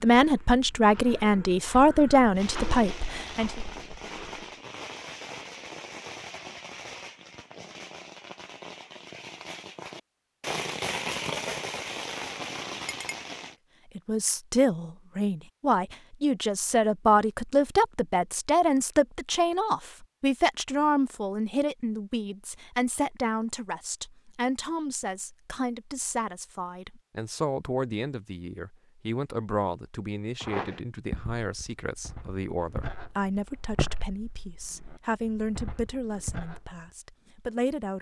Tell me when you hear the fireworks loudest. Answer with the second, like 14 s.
11 s.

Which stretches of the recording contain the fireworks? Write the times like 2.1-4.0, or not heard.
2.4-13.6.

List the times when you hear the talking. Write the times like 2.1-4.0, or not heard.
0.0-3.6, 13.9-37.9.